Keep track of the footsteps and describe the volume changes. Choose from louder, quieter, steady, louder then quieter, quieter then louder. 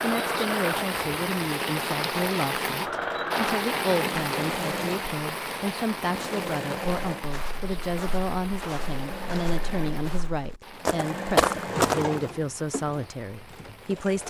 louder.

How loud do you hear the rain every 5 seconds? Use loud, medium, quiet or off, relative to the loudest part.
loud, medium, quiet.